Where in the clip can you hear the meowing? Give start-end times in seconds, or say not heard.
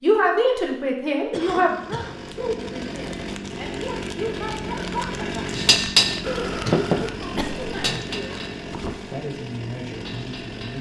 not heard.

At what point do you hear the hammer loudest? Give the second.
6 s.